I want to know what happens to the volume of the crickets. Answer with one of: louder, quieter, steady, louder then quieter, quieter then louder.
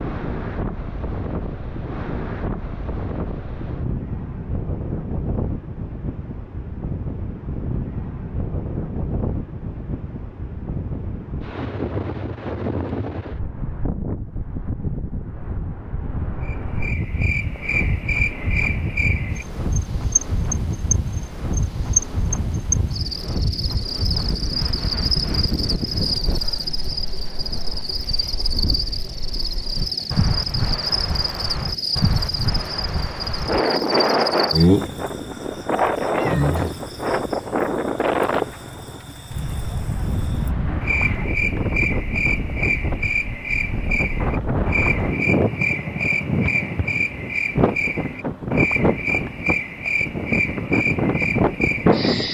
steady.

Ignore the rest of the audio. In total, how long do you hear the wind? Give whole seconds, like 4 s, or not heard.
52 s.